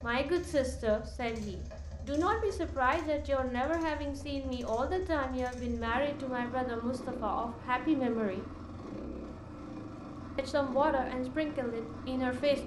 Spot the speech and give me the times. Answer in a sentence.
The speech can be heard from 0.0 to 8.4 s and from 10.3 to 12.6 s.